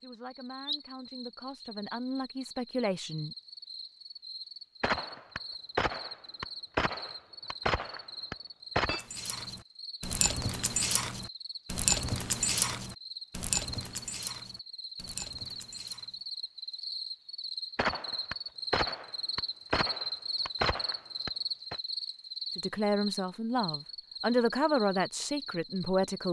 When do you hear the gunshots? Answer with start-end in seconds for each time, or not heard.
4.8-9.1, 17.8-21.8.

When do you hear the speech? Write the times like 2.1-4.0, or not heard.
0.0-3.4, 22.6-26.2.